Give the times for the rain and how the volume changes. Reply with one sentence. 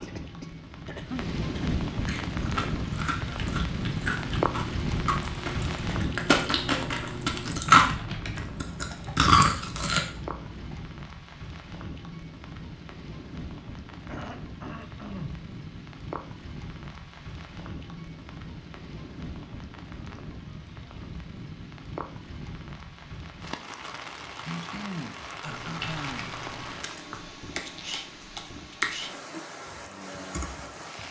The rain can be heard from 0.0 to 31.0 s, getting quieter.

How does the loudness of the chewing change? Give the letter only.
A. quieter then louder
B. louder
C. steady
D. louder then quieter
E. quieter
B.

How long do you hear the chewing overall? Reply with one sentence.
The chewing can be heard for 8 seconds in total.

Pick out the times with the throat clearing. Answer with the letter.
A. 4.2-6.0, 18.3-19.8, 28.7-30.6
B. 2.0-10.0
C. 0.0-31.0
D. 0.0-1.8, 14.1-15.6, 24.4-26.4
D.